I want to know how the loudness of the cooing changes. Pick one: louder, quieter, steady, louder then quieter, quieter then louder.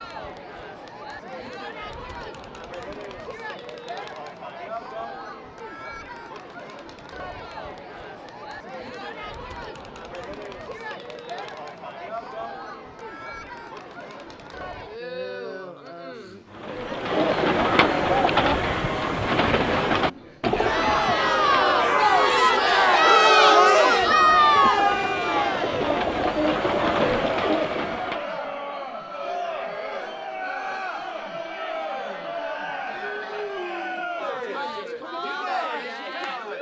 quieter then louder.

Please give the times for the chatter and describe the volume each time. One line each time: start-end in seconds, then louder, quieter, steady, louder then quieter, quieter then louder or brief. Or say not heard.
0.0-36.5 louder then quieter.